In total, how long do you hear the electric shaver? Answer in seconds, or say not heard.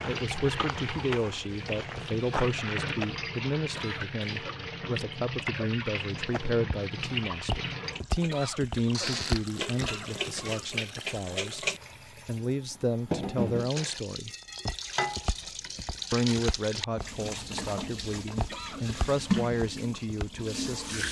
not heard.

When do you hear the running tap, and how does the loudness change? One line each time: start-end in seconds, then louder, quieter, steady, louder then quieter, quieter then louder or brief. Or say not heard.
0.0-21.0 steady.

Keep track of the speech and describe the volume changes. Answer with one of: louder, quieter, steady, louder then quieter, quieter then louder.
steady.